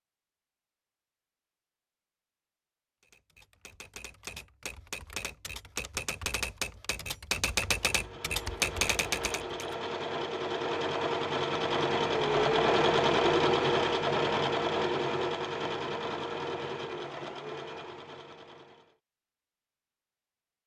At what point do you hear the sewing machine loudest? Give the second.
13 s.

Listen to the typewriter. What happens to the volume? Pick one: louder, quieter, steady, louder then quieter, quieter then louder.
louder.